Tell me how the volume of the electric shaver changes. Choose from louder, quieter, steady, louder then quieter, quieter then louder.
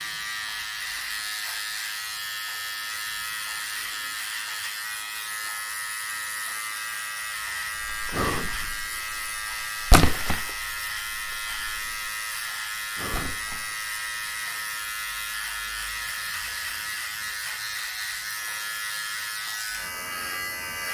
steady.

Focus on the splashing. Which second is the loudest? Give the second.
10 s.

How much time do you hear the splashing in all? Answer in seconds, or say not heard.
4 s.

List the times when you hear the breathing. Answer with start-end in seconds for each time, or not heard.
8.1-8.6, 12.9-13.4.